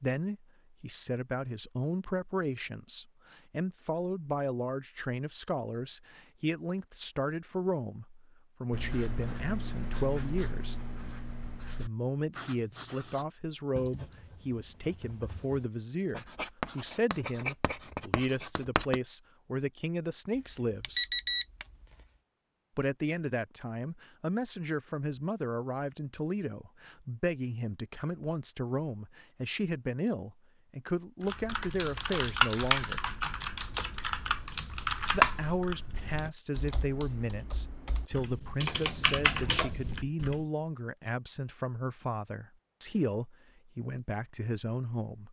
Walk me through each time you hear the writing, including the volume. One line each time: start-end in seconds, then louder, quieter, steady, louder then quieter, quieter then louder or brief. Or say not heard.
8.7-19.0 quieter then louder.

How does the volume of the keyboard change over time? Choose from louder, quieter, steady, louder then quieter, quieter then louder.
quieter then louder.